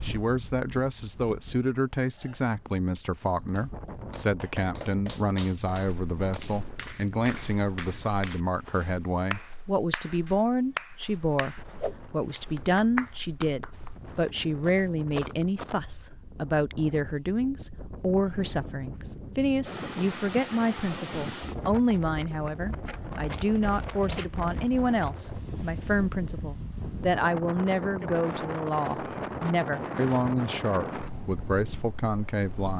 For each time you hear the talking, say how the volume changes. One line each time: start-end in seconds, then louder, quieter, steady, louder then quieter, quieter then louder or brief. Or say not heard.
0.0-32.7 steady.